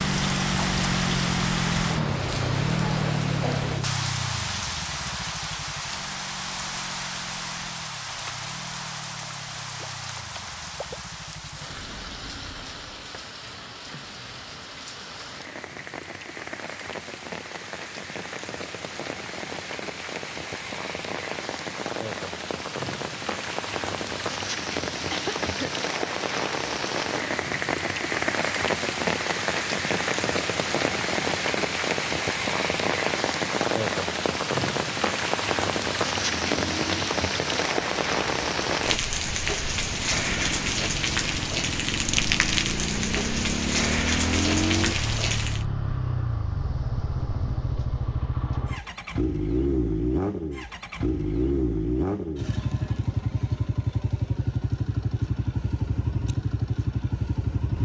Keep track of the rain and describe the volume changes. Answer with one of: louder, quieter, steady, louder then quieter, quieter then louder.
quieter then louder.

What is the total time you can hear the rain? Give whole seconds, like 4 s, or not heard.
46 s.